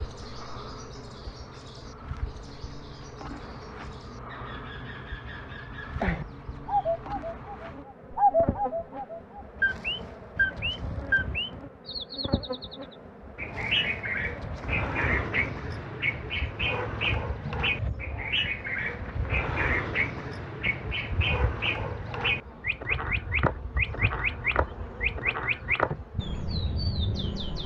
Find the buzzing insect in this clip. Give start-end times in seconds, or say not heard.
0.0-27.4.